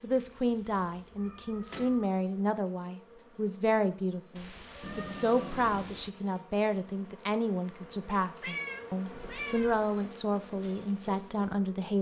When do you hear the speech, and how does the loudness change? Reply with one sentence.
You can hear the speech from 0.0 to 11.9 s, at a steady volume.